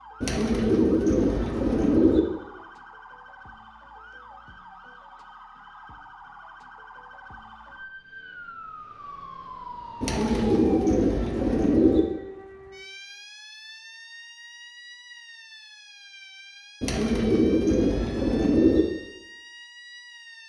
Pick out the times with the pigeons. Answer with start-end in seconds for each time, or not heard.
0.2-2.2, 10.0-12.0, 16.8-18.9.